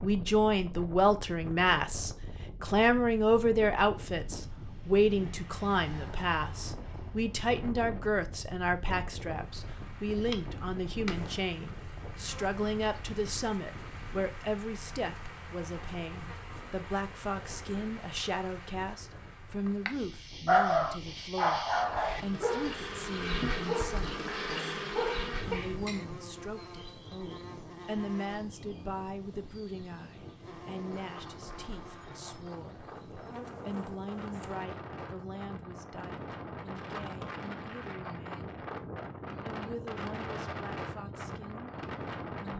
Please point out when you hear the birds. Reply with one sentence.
You can't hear the birds here.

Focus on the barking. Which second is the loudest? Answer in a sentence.
The volume of the barking peaks at 21 seconds.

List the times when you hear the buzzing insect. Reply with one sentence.
You can hear the buzzing insect from 9.2 to 34.6 s.